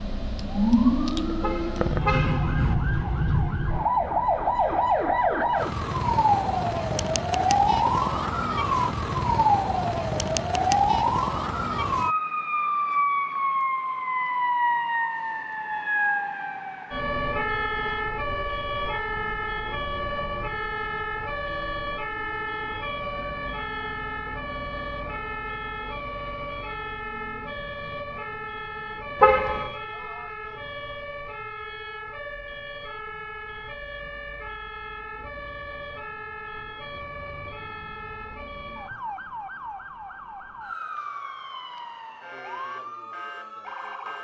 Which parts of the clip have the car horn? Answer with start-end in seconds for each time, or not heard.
1.4-2.8, 29.2-29.7.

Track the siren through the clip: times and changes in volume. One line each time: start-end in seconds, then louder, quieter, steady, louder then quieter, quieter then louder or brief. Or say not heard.
0.0-44.1 quieter.